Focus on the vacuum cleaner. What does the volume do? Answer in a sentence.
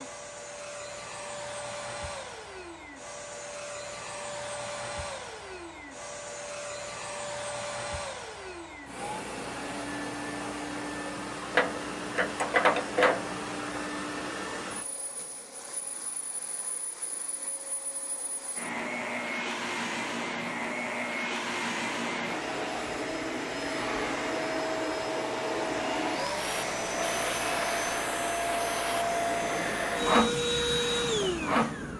The loudness of the vacuum cleaner goes up.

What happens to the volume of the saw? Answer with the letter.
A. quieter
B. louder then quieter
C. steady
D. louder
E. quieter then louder
B.